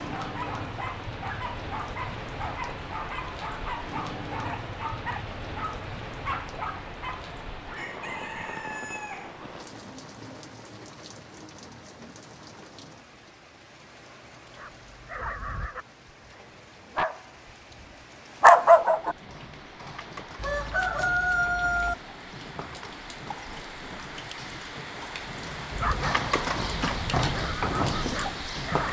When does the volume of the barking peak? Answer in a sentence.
The loudest moment of the barking is at 19 seconds.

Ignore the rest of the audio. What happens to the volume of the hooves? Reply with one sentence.
The volume of the hooves goes up.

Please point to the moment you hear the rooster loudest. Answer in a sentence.
The volume of the rooster peaks at 21 seconds.